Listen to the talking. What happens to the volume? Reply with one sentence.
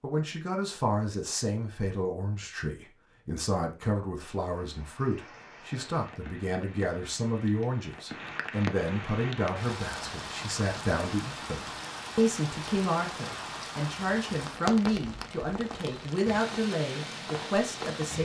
The volume of the talking stays about the same.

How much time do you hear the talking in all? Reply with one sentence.
The talking can be heard for 18 seconds in total.